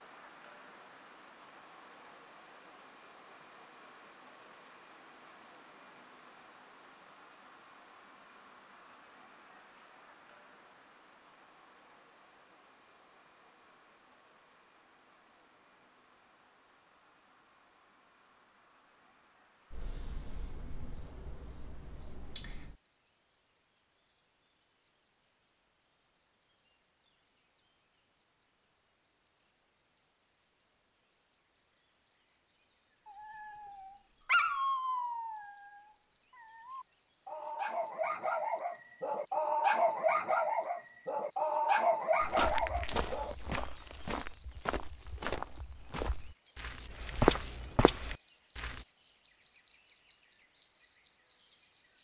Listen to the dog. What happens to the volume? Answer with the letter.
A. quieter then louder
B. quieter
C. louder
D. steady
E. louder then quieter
A.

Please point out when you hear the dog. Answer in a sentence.
The dog can be heard from 33.0 to 43.4 s.